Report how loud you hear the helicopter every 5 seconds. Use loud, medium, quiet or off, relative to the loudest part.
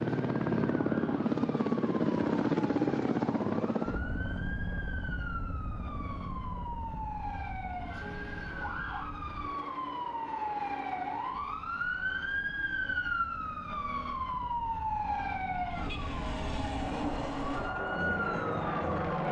loud, quiet, quiet, medium.